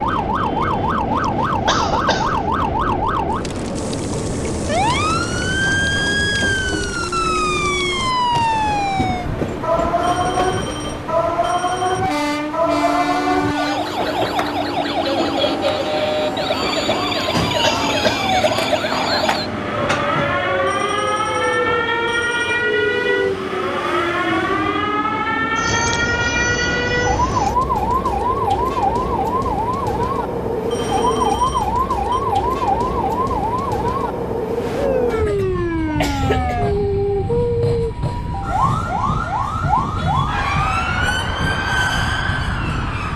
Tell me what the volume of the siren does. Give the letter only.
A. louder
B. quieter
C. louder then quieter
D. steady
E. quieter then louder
D.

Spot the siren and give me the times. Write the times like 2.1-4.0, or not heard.
0.0-43.1.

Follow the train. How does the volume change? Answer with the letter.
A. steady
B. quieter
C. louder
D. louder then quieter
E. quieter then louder
A.